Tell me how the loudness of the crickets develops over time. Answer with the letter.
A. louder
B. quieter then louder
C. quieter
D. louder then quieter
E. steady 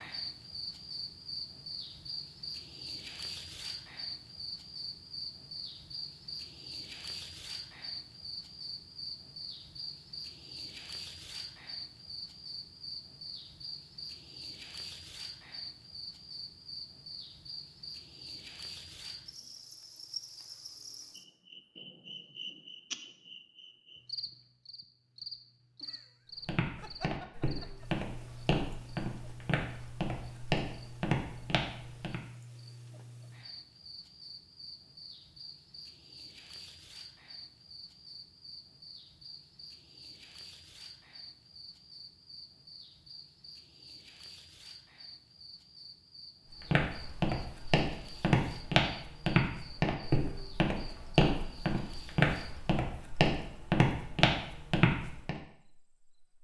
C.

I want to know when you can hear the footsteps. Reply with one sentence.
You can hear the footsteps from 26.4 to 32.2 s and from 46.6 to 55.4 s.